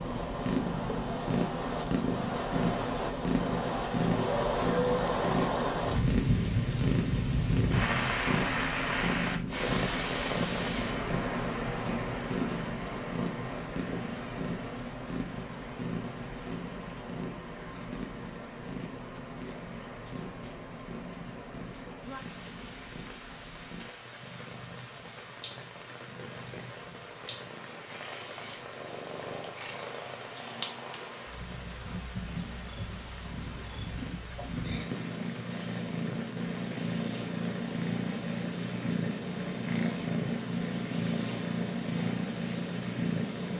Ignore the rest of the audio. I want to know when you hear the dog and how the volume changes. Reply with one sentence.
The dog can't be heard in this clip.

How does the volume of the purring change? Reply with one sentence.
The volume of the purring goes down, then up.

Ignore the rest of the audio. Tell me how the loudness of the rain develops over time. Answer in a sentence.
The loudness of the rain goes down.